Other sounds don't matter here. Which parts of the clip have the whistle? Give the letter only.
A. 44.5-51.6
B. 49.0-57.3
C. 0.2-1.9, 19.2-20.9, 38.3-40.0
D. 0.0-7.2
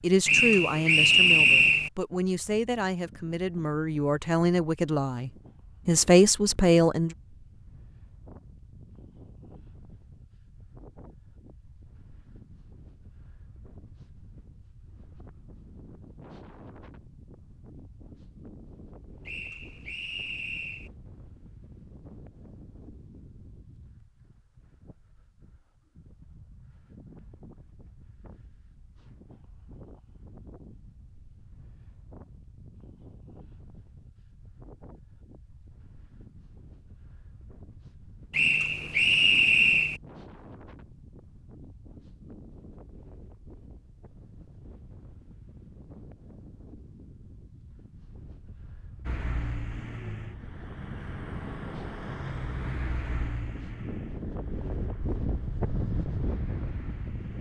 C.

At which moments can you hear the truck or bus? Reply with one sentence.
You can hear the truck or bus from 49.0 to 57.3 s.